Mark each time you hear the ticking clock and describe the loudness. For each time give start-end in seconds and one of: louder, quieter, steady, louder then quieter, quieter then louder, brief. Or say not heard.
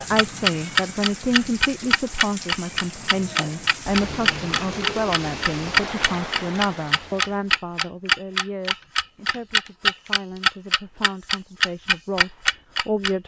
0.1-13.2 steady.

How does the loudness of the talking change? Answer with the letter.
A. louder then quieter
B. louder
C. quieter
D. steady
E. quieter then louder
C.